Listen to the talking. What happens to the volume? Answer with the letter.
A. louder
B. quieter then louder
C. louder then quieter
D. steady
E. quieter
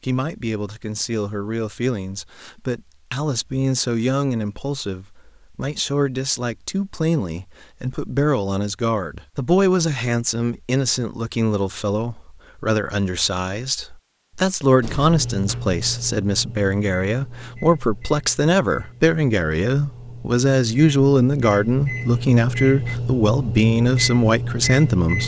A.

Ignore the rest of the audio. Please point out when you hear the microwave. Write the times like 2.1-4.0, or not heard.
14.8-25.2.